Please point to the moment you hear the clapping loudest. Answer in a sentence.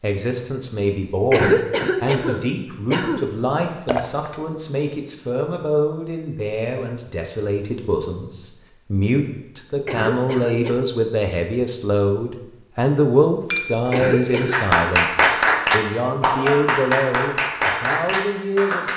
The volume of the clapping peaks at 15 seconds.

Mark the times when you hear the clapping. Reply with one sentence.
The clapping can be heard from 14.5 to 18.9 s.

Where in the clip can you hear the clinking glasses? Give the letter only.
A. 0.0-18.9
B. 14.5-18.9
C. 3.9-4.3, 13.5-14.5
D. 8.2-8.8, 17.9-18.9
C.